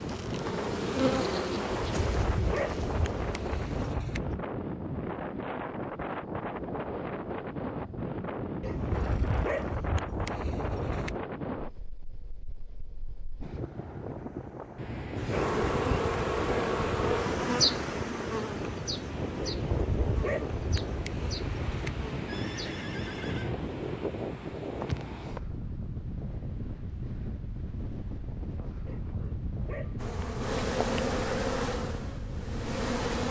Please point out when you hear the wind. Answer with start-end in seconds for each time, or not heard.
0.0-33.2.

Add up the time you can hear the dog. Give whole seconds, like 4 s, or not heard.
10 s.